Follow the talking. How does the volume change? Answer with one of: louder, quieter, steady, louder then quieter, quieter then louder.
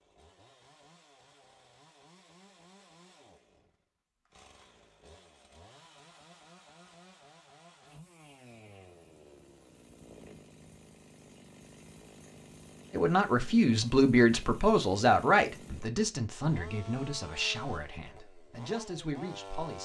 quieter.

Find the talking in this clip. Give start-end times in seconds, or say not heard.
12.9-19.8.